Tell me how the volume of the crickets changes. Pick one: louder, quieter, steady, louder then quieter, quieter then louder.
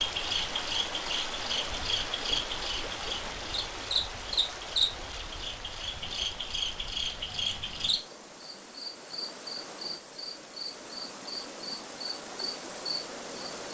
quieter.